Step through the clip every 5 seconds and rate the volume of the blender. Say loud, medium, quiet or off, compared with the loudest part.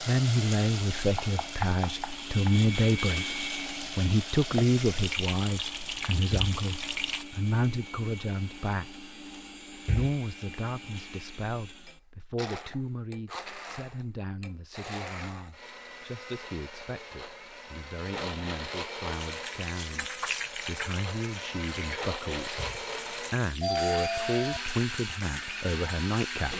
loud, medium, medium, loud, loud, loud.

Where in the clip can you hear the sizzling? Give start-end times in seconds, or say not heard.
0.0-7.2, 19.1-26.4.